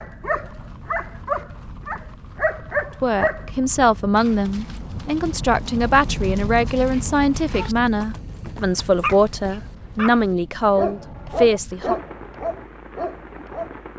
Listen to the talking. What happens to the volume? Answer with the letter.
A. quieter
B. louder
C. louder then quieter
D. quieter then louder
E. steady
E.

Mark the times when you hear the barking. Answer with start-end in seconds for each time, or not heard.
0.0-3.5, 8.8-13.8.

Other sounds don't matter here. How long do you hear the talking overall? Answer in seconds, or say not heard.
9 s.